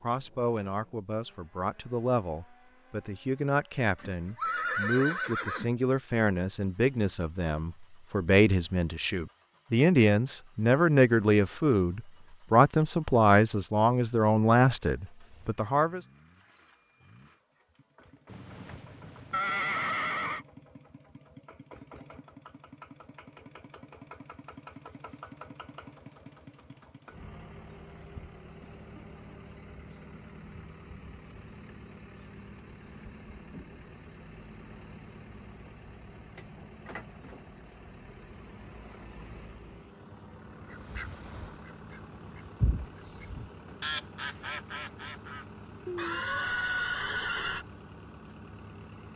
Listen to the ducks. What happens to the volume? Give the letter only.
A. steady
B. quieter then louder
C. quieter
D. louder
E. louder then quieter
E.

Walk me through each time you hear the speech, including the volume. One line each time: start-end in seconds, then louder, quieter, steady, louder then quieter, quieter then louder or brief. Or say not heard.
0.0-16.0 louder.